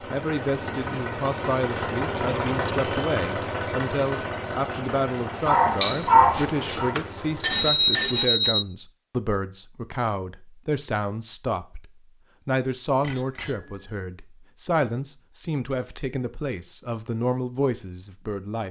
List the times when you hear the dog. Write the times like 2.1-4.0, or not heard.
5.5-7.0.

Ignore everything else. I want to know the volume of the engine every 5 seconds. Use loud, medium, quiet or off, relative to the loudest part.
loud, medium, off, off.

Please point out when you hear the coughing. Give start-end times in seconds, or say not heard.
not heard.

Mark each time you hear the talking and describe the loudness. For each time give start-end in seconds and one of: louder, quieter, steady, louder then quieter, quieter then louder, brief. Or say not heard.
0.0-18.6 steady.